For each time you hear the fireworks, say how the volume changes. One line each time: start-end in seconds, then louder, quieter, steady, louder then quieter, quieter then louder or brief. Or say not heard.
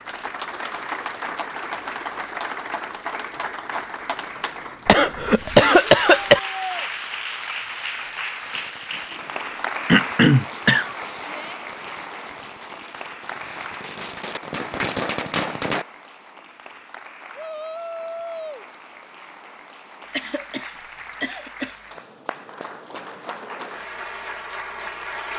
8.4-15.8 louder.